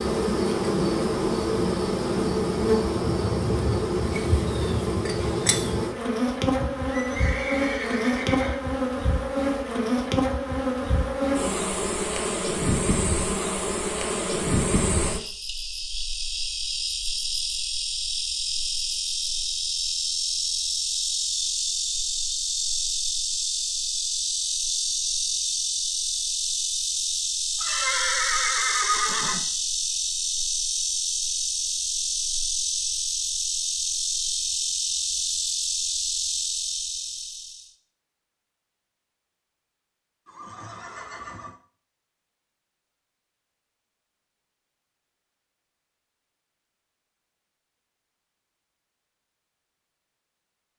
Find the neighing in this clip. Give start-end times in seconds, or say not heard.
6.6-8.6, 27.6-29.4, 40.2-41.5.